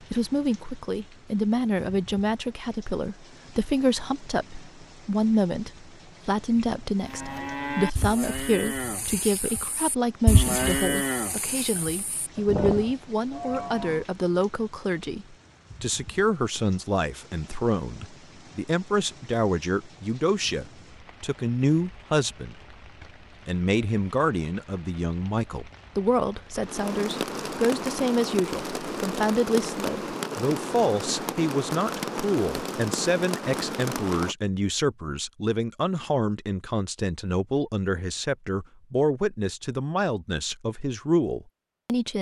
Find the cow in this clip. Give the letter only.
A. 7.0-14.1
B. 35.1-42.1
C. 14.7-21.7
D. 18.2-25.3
A.